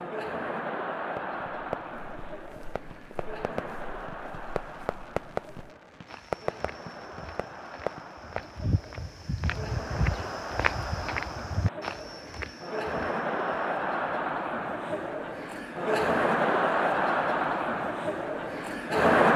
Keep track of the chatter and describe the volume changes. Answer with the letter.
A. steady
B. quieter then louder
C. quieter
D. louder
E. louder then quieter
B.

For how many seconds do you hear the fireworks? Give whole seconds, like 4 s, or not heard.
8 s.